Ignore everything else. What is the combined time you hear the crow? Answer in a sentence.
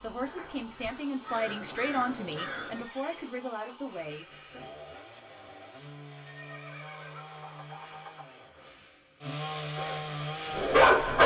The crow can be heard for 3 seconds in total.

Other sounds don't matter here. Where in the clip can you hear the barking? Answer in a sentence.
You can hear the barking from 9.6 to 11.2 s.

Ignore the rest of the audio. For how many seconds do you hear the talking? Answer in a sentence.
You can hear the talking for 5 seconds altogether.